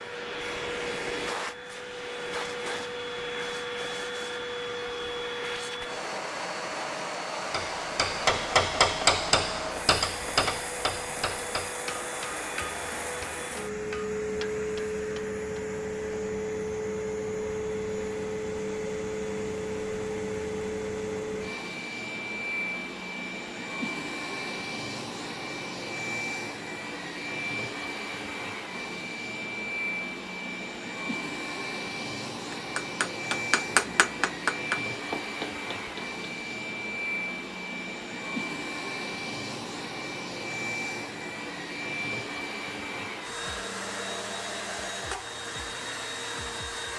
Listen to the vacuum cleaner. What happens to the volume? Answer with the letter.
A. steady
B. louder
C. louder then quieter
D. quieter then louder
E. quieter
A.